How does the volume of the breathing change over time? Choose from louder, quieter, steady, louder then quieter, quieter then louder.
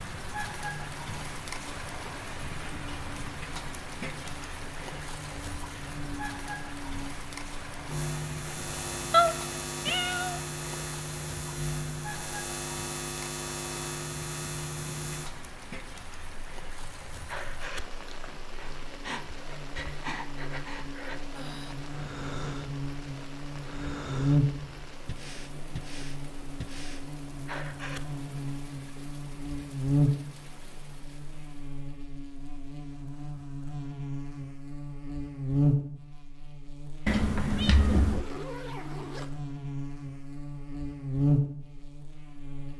steady.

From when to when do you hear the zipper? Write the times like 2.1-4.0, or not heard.
37.8-39.3.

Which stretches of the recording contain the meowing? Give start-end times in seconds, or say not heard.
9.1-10.4, 37.0-38.2.